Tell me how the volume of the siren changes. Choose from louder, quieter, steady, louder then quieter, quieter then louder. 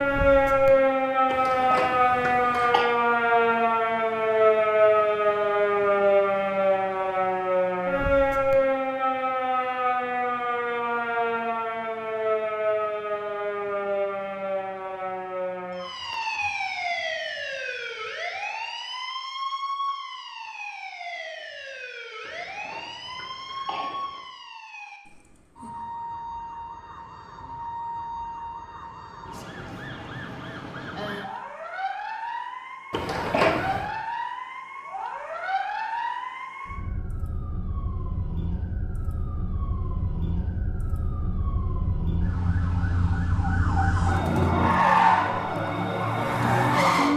quieter then louder.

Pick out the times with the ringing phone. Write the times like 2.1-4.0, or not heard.
not heard.